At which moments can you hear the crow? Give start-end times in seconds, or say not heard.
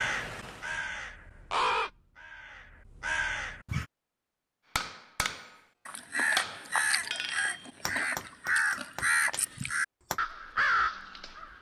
0.0-3.9, 5.8-11.5.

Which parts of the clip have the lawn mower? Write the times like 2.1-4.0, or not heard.
not heard.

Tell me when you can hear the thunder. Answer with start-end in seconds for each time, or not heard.
not heard.